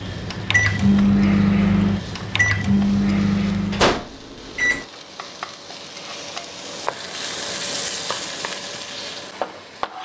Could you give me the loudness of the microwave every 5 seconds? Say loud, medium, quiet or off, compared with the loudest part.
loud, off.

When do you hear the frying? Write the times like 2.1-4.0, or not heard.
0.0-10.0.